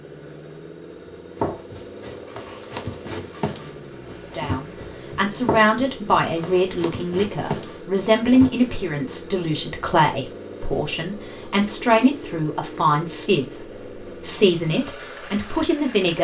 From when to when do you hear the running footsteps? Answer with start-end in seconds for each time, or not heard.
1.4-9.1.